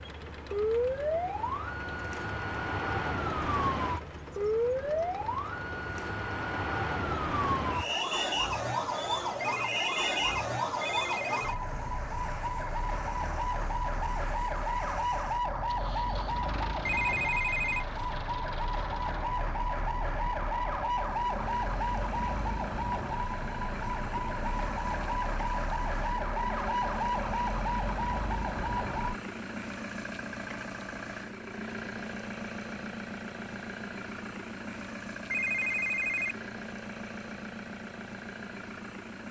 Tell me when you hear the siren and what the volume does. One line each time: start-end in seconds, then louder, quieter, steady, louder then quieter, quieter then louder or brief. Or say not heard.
0.0-29.1 steady.